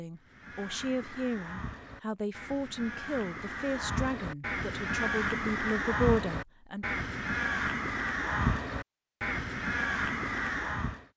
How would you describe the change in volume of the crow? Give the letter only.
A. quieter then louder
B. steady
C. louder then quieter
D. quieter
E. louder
E.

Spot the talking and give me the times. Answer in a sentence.
You can hear the talking from 0.0 to 6.8 s.